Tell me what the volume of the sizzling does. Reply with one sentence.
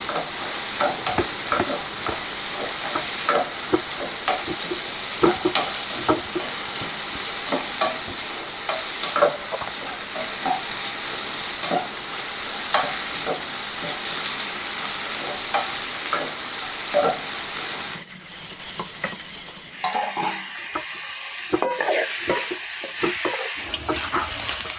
The loudness of the sizzling stays about the same.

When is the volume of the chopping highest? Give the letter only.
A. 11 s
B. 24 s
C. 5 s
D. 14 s
C.